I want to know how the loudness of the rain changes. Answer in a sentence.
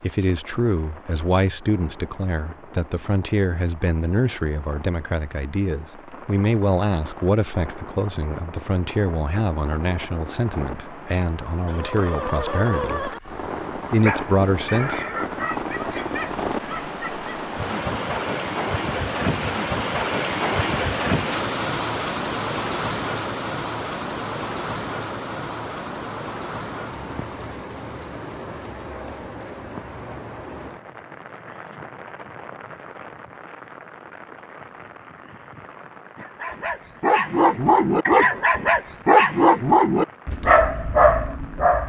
The volume of the rain goes up, then down.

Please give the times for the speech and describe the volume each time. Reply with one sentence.
The speech can be heard from 0.0 to 13.1 s, at a steady volume; and briefly from 13.9 to 15.0 s.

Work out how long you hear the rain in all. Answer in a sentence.
The rain can be heard for 42 seconds in total.